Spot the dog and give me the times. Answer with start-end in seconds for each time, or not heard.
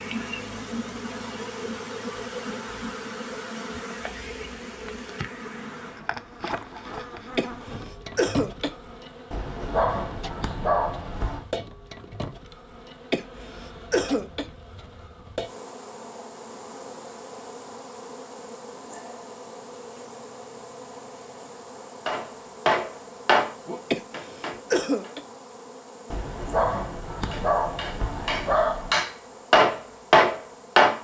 9.3-11.4, 26.1-29.0.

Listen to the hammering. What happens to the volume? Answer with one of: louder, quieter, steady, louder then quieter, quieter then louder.
quieter then louder.